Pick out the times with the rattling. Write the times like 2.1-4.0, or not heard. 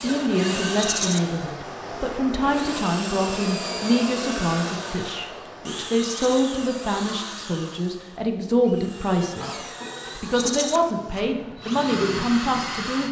0.8-1.2, 6.0-6.4, 10.3-10.8.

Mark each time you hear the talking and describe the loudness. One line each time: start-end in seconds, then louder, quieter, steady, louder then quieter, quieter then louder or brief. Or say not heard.
0.0-13.0 steady.